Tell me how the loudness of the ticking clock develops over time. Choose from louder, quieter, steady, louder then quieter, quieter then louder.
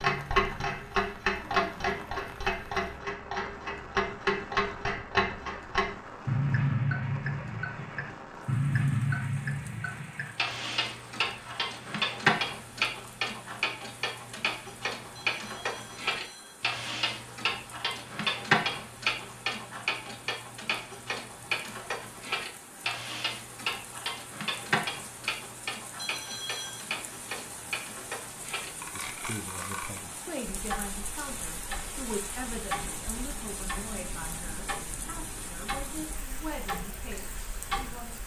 quieter.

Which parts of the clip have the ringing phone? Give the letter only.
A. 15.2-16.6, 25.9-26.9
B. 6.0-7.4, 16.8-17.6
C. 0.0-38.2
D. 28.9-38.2
A.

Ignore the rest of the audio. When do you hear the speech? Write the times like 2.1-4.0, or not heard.
28.9-38.2.